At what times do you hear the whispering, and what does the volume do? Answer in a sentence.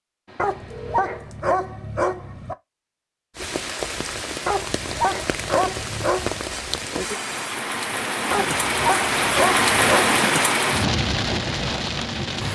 You can't hear the whispering here.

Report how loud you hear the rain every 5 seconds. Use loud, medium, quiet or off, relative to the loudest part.
medium, loud, loud.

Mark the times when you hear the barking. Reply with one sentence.
The barking can be heard from 0.3 to 2.5 s, from 4.5 to 6.6 s and from 8.3 to 10.2 s.